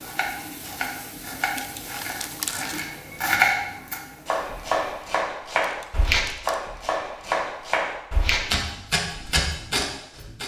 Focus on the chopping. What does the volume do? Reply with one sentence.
The volume of the chopping goes up.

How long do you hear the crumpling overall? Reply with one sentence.
The crumpling can be heard for 2 seconds in total.